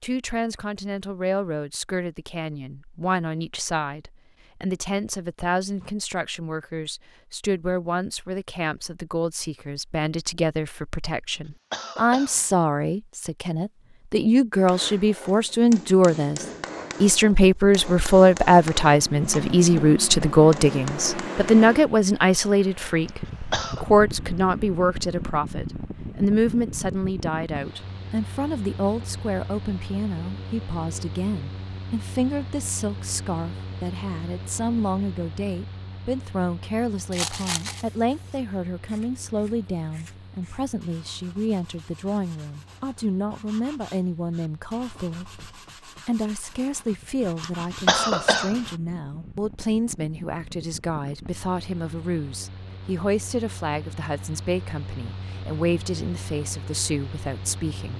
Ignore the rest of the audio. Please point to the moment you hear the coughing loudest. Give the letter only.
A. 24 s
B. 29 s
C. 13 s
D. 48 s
D.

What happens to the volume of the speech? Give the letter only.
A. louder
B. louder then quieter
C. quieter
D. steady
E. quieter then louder
B.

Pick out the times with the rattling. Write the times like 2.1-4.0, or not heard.
37.1-37.9.